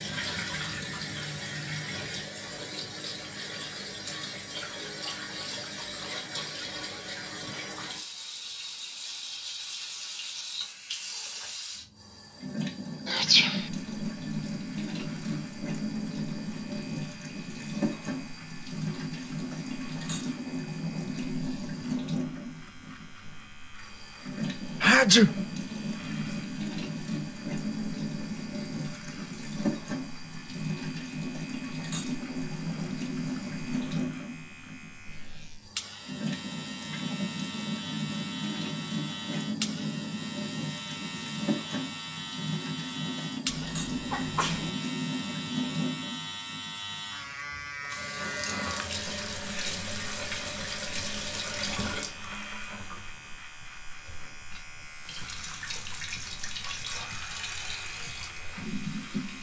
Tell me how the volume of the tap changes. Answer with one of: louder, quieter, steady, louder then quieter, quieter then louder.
steady.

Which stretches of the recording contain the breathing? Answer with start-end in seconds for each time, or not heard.
not heard.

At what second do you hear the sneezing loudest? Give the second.
25 s.